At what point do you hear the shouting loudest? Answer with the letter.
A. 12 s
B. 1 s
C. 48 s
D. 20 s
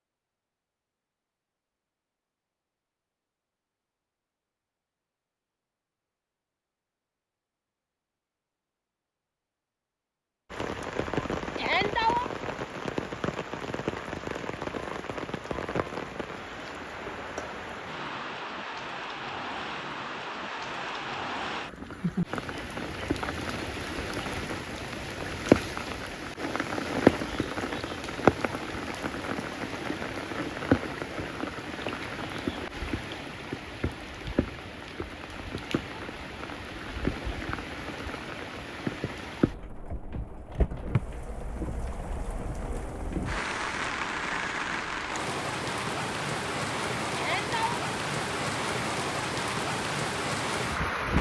A.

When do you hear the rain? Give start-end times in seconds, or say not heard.
10.5-51.1.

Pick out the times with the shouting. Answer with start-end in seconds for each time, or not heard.
11.6-12.2, 47.1-47.8.